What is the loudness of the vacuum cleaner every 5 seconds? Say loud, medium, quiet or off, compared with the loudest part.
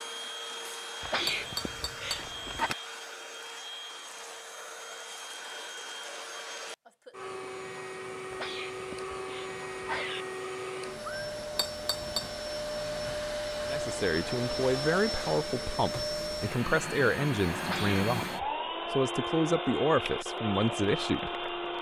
medium, medium, loud, loud, loud.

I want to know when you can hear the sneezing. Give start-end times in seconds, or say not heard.
1.0-2.7, 8.3-10.2, 17.6-18.4.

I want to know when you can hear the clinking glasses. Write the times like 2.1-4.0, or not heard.
1.2-2.8, 11.6-12.3.